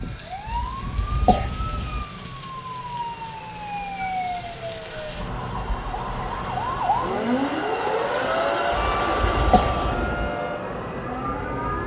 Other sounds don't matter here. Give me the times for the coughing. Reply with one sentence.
You can hear the coughing from 0.5 to 2.0 s and from 8.7 to 10.3 s.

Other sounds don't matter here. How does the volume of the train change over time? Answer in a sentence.
The loudness of the train goes up.